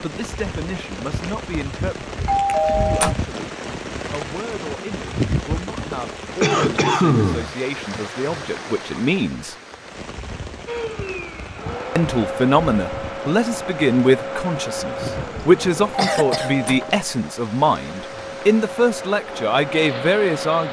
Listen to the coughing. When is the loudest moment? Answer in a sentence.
The volume of the coughing peaks at 7 seconds.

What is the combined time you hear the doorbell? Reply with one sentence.
The doorbell can be heard for 2 seconds in total.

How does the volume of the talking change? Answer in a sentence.
The loudness of the talking goes up.